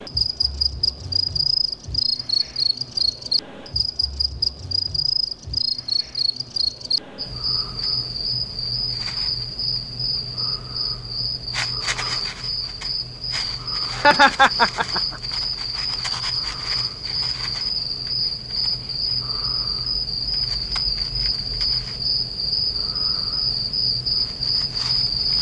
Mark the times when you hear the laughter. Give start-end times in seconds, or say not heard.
13.9-15.2.